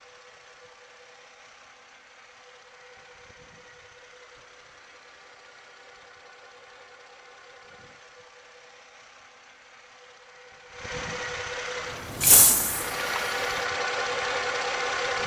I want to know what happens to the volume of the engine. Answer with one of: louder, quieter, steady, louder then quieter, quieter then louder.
louder.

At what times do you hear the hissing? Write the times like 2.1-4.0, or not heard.
11.8-13.5.